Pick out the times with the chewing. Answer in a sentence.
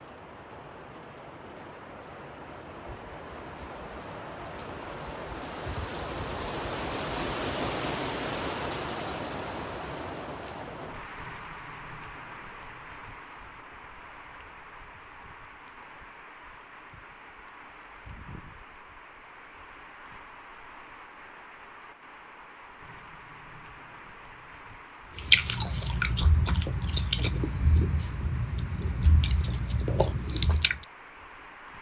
The chewing can be heard from 25.1 to 30.9 s.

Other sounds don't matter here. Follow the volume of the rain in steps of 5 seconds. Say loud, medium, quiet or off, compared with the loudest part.
medium, loud, medium, quiet, quiet, quiet, quiet.